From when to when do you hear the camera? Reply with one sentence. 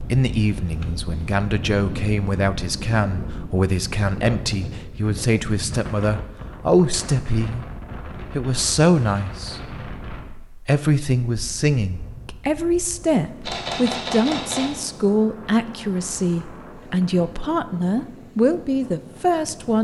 You can hear the camera from 13.4 to 14.8 s.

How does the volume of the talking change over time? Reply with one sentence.
The loudness of the talking stays about the same.